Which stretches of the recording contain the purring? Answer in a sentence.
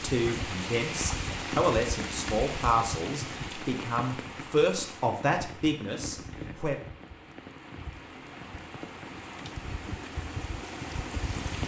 The purring can't be heard in this clip.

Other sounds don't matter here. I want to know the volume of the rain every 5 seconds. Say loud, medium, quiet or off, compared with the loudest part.
loud, medium, loud.